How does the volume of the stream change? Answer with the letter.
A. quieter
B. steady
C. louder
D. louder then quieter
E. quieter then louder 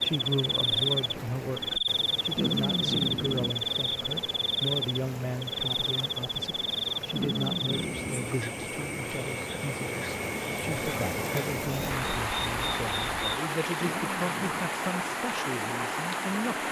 C.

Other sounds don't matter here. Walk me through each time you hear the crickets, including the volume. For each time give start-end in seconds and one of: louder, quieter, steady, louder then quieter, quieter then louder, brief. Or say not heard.
0.0-13.4 quieter.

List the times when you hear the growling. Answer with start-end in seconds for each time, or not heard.
2.4-3.5, 7.1-8.3, 13.8-14.7.